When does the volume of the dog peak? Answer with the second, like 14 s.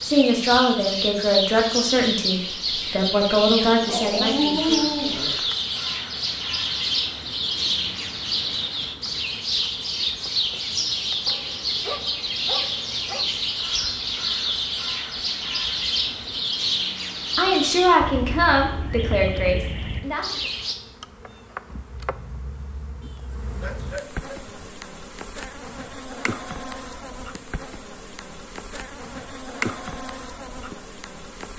5 s.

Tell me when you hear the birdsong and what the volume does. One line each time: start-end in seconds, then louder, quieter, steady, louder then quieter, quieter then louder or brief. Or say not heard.
0.0-20.8 steady.